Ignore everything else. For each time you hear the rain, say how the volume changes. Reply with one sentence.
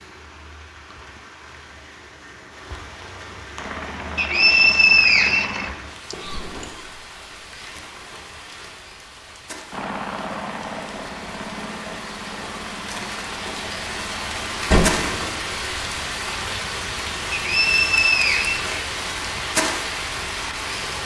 The rain can be heard from 0.0 to 21.0 s, getting louder.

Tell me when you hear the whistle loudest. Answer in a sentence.
The volume of the whistle peaks at 5 seconds.